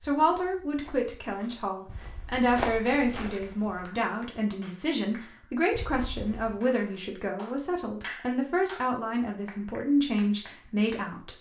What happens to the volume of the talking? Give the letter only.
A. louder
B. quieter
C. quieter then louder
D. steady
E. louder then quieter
D.